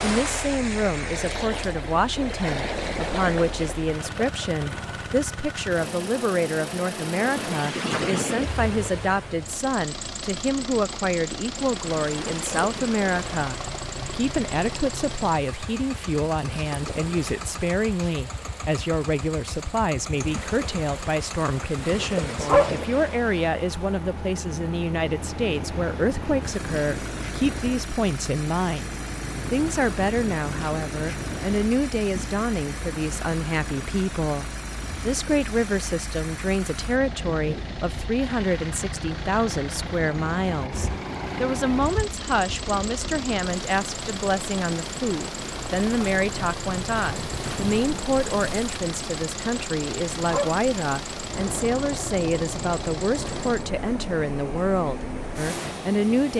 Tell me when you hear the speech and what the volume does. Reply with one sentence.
The speech can be heard from 0.0 to 56.3 s, at a steady volume.